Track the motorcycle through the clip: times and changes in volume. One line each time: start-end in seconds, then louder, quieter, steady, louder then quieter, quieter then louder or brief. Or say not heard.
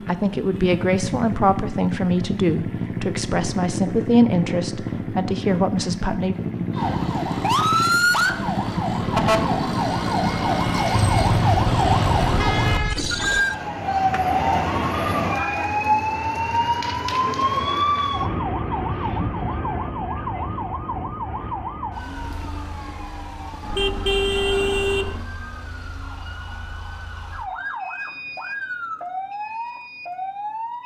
0.0-12.6 steady.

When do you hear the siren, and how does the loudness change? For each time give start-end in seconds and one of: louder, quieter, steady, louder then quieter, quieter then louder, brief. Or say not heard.
6.7-30.8 quieter.